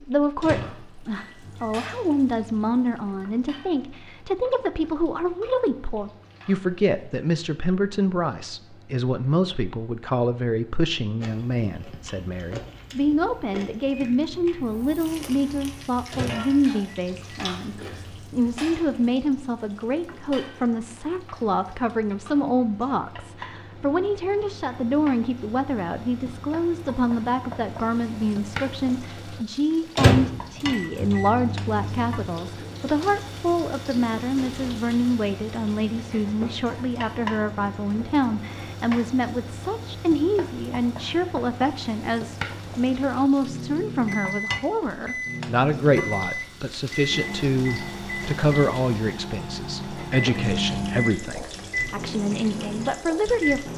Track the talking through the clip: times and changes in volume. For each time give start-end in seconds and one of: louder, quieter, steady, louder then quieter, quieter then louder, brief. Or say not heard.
0.0-53.7 steady.